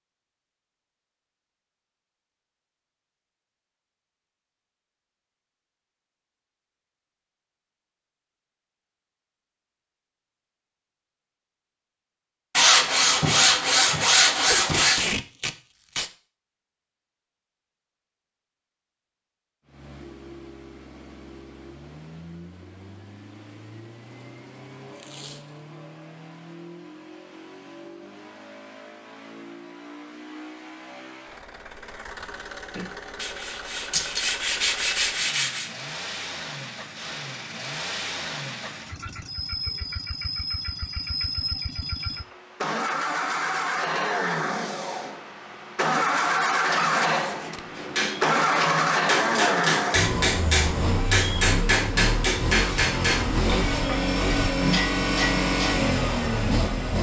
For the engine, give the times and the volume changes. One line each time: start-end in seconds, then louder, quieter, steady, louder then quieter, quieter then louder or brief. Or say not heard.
19.6-56.9 louder.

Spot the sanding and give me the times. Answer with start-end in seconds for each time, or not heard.
12.6-15.0, 32.8-35.7.